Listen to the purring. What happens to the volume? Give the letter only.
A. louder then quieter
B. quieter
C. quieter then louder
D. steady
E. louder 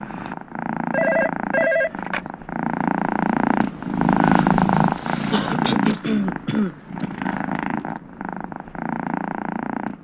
A.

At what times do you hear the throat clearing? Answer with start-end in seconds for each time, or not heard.
5.3-7.2.